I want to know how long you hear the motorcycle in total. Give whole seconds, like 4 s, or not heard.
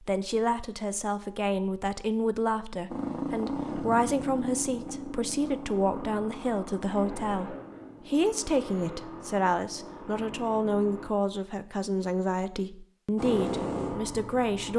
10 s.